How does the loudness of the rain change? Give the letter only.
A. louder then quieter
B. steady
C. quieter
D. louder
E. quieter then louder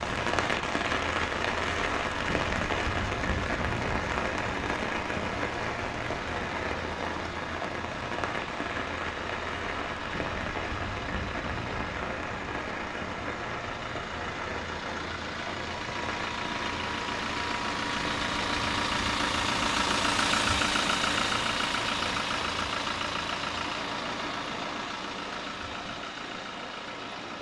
C.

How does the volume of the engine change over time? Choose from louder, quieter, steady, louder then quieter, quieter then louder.
louder then quieter.